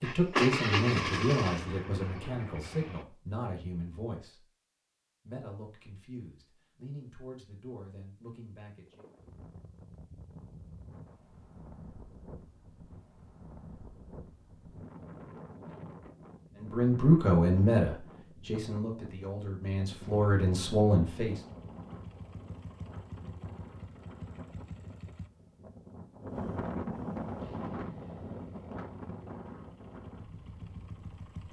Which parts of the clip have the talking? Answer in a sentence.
You can hear the talking from 0.0 to 4.4 s, from 5.2 to 9.1 s and from 16.6 to 21.4 s.